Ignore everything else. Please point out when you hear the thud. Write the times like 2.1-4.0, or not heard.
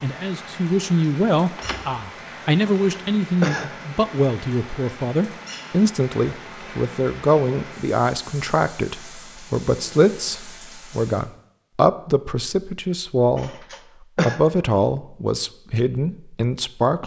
1.6-2.0.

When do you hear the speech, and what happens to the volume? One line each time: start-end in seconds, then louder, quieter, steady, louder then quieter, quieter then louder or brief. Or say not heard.
0.0-17.0 steady.